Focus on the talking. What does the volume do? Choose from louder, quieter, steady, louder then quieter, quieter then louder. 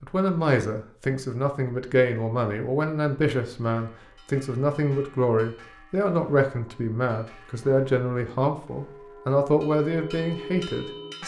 steady.